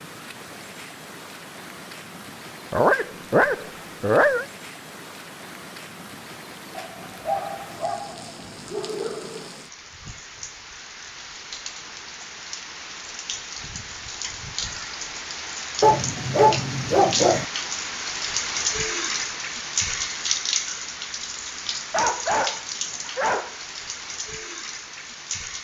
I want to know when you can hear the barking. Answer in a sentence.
The barking can be heard from 2.7 to 4.5 s, from 6.8 to 9.5 s, from 15.8 to 17.4 s and from 21.9 to 23.6 s.